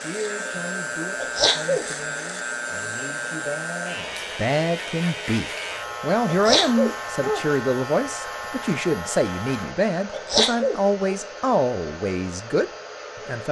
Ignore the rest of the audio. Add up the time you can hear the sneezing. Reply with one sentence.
The sneezing can be heard for 3 seconds in total.